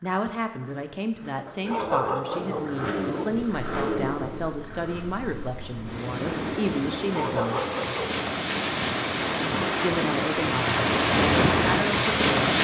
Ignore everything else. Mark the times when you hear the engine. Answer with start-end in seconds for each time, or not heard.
0.0-5.0.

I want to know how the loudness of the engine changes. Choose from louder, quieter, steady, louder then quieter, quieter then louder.
louder.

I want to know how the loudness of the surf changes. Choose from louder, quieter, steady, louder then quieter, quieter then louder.
louder.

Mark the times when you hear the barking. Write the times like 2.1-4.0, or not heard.
1.4-3.3, 7.0-8.2.